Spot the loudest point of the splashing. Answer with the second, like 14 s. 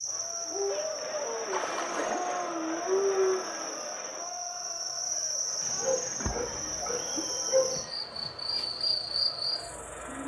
2 s.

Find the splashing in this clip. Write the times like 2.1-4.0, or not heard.
1.4-2.6, 6.2-7.8.